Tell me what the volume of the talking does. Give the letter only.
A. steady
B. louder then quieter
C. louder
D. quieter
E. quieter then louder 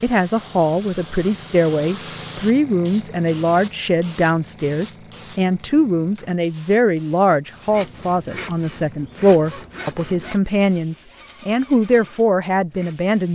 A.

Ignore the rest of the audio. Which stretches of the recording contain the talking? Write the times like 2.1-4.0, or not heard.
0.0-13.2.